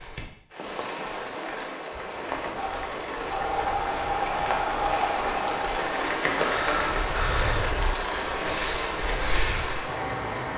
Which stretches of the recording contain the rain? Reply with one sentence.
You can hear the rain from 0.0 to 10.5 s.